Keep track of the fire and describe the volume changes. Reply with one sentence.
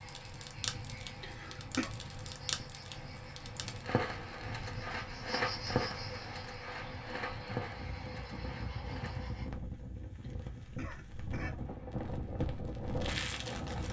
The volume of the fire goes down, then up.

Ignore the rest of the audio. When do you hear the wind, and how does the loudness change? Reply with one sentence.
The wind can be heard from 0.0 to 13.8 s, getting louder.